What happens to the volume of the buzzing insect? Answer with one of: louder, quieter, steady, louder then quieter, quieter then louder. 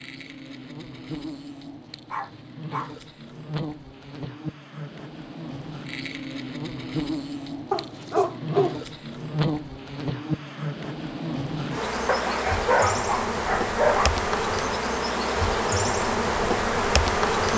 louder.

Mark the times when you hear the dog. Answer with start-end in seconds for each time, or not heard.
2.1-3.0, 7.7-8.8, 12.1-14.1.